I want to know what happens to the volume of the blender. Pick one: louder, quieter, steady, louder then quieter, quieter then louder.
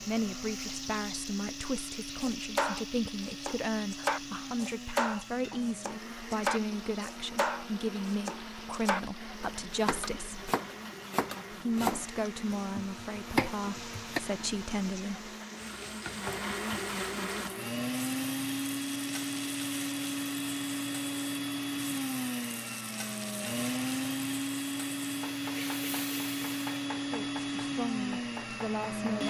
louder.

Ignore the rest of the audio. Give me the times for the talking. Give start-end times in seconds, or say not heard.
0.0-10.4, 11.5-15.3, 27.0-29.2.